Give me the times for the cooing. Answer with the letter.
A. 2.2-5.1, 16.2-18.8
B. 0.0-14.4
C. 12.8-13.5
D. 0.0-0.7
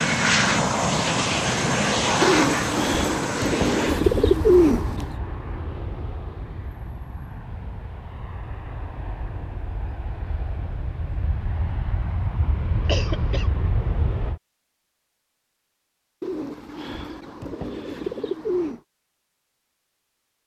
A.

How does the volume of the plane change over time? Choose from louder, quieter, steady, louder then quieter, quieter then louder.
quieter then louder.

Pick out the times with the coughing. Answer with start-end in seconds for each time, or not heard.
12.8-13.5.